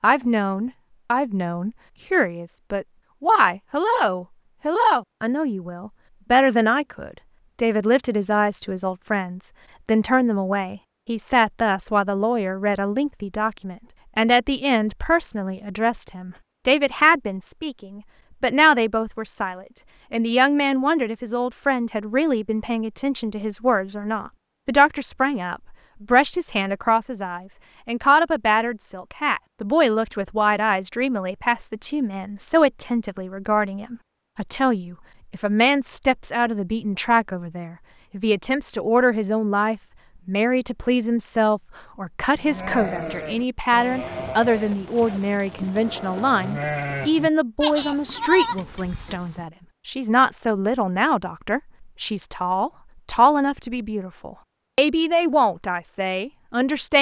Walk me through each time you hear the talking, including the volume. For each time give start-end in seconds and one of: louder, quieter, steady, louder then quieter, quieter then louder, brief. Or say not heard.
0.0-56.9 steady.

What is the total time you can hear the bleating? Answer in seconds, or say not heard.
7 s.